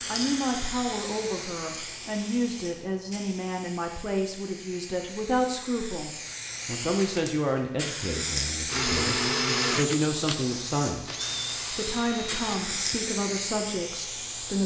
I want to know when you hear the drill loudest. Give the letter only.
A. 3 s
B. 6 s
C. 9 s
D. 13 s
C.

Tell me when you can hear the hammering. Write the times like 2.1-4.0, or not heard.
not heard.